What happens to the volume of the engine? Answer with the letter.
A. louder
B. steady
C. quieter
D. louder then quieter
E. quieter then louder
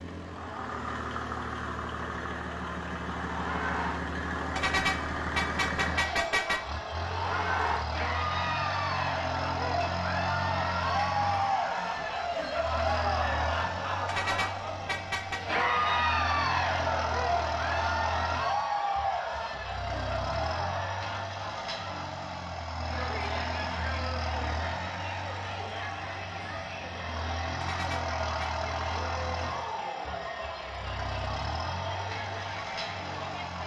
B.